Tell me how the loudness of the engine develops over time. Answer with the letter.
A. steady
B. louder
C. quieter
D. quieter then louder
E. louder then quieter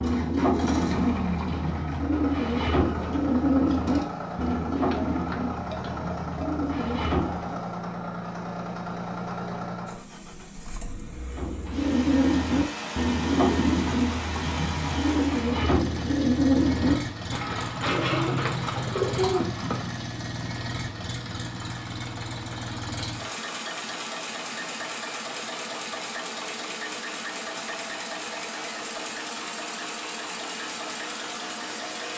A.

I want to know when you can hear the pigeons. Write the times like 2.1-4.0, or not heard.
0.0-7.6, 11.3-20.0.